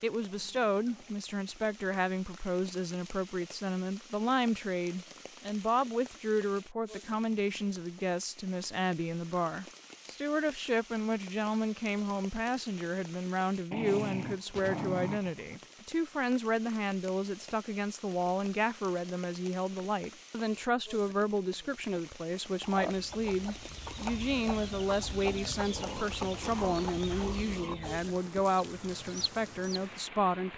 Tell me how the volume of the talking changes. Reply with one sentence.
The loudness of the talking stays about the same.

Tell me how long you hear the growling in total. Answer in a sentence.
You can hear the growling for 5 seconds altogether.